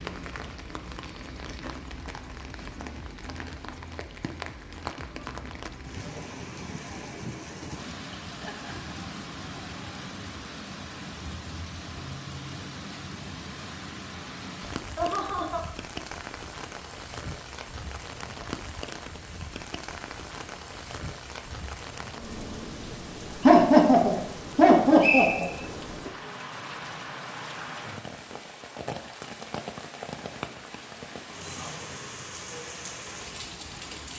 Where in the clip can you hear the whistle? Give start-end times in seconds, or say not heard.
25.0-25.8.